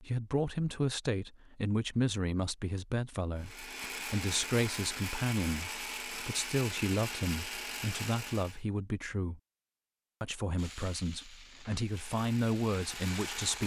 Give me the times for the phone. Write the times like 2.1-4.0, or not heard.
not heard.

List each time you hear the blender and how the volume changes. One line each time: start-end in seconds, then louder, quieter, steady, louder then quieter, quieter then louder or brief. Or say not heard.
3.4-8.6 steady
11.8-13.6 brief.